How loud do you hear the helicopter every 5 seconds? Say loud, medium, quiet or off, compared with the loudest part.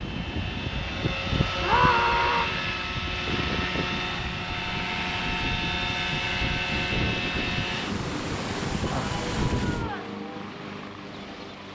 loud, loud, medium.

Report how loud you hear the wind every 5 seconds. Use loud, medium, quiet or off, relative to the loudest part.
loud, loud, off.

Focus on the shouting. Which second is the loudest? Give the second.
2 s.